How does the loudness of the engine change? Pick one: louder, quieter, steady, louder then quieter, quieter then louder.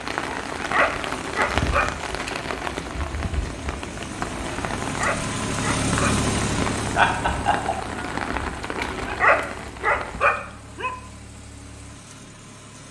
louder then quieter.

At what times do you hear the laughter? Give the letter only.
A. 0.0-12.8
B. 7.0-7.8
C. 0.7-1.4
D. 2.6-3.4
B.